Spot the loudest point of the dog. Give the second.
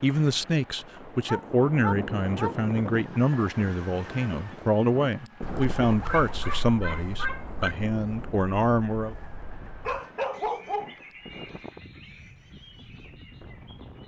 10 s.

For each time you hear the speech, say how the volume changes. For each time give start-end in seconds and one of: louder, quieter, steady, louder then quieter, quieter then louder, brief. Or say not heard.
0.0-9.2 steady.